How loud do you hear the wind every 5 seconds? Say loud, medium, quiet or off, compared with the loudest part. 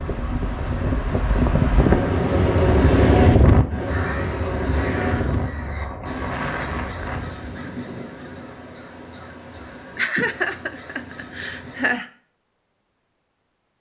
loud, medium, off.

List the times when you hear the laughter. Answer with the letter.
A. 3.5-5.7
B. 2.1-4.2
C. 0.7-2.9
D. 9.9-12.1
D.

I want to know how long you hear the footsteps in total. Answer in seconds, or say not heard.
not heard.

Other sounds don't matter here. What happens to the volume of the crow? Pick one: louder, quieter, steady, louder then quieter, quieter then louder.
quieter.